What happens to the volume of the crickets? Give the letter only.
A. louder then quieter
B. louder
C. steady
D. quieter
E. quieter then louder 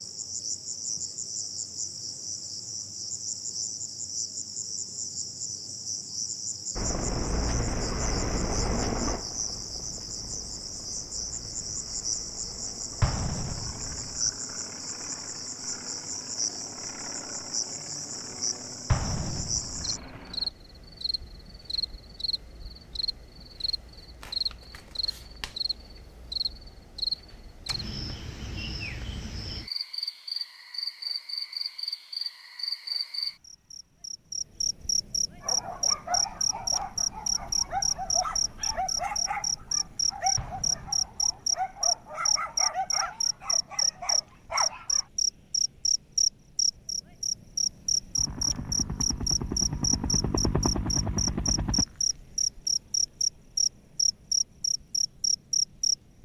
B.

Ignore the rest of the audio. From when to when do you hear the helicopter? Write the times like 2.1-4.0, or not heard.
6.8-20.5, 48.1-51.9.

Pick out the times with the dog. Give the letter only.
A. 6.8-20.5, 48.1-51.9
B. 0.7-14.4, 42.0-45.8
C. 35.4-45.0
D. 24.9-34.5
C.